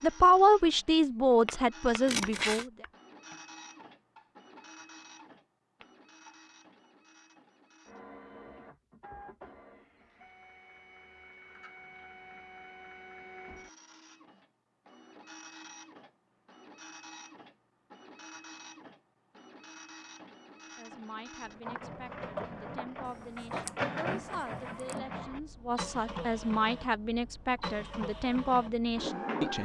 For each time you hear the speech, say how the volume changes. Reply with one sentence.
The speech can be heard briefly from 0.0 to 2.7 s; and from 20.8 to 29.6 s, getting louder.